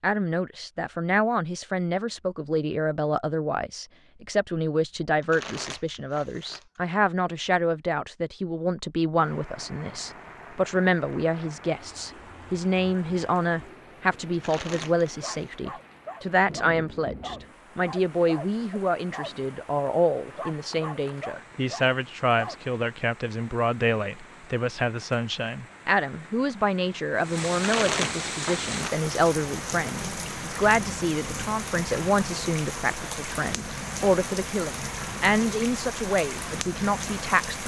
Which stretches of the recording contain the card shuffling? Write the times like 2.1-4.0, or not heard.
5.2-6.8, 14.3-15.5, 27.5-29.1.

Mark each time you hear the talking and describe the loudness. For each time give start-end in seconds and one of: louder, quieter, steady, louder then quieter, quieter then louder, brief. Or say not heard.
0.0-37.6 steady.